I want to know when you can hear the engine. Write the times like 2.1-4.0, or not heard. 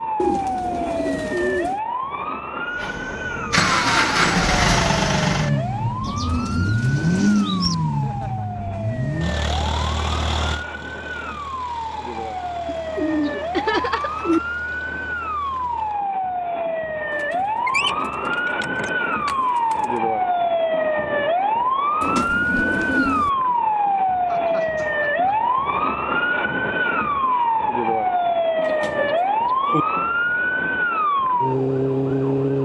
2.8-16.1.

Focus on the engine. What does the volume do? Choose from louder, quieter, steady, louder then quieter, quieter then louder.
quieter.